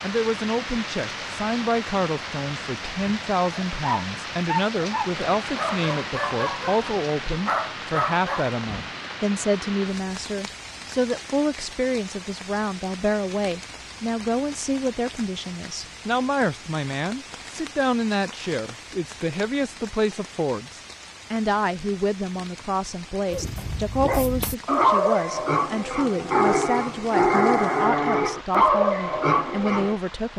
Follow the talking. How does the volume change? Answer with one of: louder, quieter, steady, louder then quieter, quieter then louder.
steady.